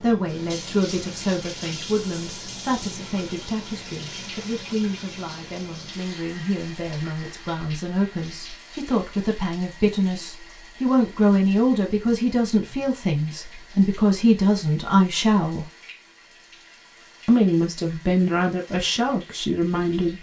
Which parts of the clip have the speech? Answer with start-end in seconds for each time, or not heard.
0.0-15.7, 17.2-20.1.